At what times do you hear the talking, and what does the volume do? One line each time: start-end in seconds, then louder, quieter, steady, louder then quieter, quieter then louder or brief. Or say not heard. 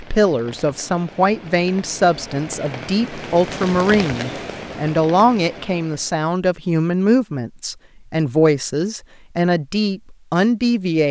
0.0-11.0 steady.